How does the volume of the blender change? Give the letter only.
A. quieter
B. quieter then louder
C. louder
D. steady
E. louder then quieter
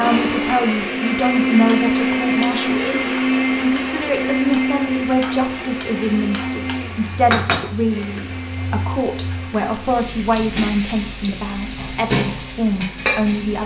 A.